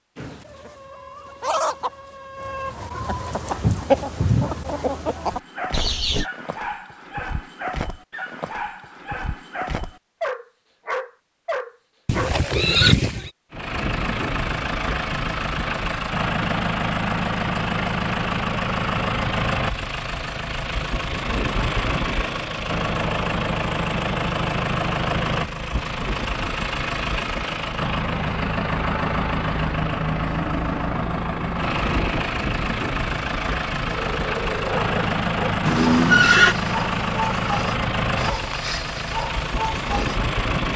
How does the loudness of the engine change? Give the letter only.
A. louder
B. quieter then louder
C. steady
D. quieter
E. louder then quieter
C.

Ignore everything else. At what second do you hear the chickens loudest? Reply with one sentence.
The loudest moment of the chickens is at 4 seconds.